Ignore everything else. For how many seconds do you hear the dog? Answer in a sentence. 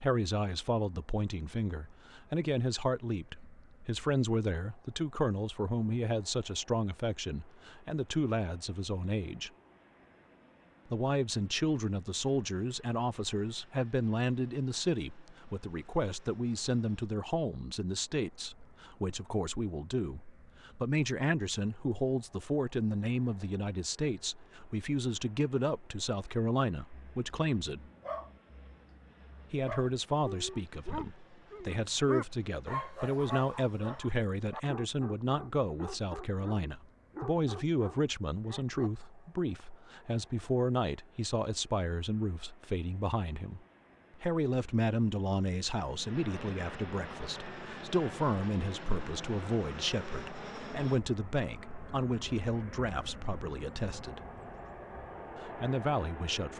The dog can be heard for 12 seconds in total.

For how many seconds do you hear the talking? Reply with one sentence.
The talking can be heard for 52 seconds in total.